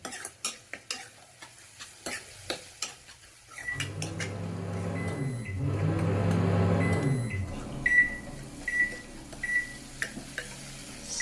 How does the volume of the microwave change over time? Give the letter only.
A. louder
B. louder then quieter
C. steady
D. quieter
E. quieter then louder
B.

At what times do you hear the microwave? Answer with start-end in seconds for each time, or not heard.
3.5-11.1.